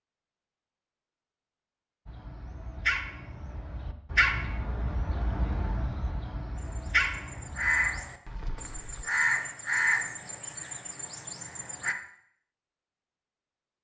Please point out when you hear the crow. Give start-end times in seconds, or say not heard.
6.5-11.9.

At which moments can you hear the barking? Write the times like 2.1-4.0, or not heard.
2.0-9.1.